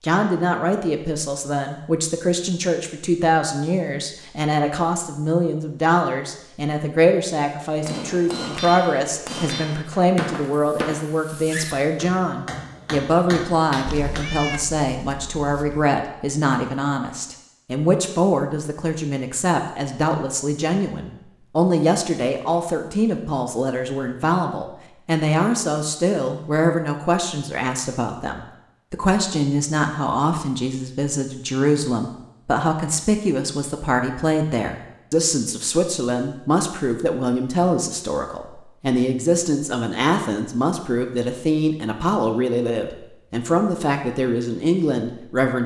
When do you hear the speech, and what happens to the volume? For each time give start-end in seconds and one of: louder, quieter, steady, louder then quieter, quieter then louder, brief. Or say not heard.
0.0-45.6 steady.